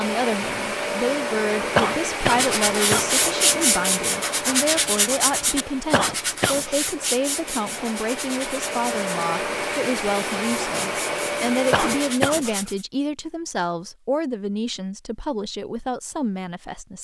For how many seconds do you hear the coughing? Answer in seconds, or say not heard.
3 s.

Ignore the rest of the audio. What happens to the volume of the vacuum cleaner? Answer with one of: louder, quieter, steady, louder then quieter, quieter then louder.
quieter then louder.